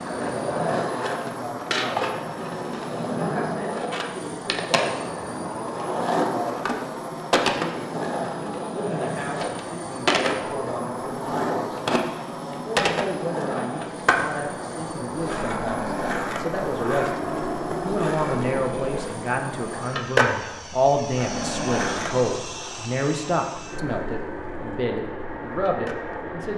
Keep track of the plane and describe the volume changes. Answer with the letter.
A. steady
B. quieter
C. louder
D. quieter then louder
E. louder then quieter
A.